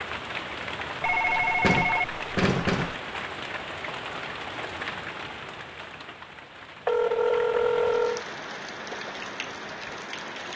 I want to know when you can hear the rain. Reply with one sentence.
The rain can be heard from 0.0 to 10.5 s.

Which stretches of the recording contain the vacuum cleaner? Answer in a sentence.
You can't hear the vacuum cleaner here.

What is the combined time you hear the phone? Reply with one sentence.
You can hear the phone for 3 seconds altogether.